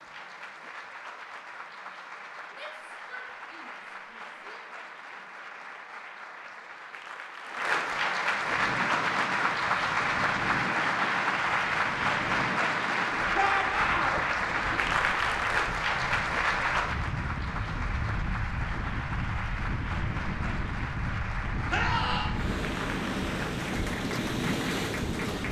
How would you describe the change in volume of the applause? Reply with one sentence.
The loudness of the applause goes up, then down.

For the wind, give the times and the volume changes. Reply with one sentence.
The wind can be heard from 8.3 to 25.4 s, getting louder.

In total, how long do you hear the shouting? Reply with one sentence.
You can hear the shouting for 4 seconds altogether.